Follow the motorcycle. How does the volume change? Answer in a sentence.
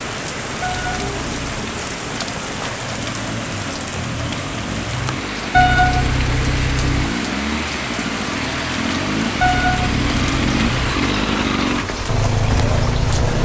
The volume of the motorcycle goes up.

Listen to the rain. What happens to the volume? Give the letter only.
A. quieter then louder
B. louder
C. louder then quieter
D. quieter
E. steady
E.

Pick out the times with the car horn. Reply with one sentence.
The car horn can be heard from 0.6 to 1.6 s, from 5.5 to 7.2 s and from 9.4 to 11.1 s.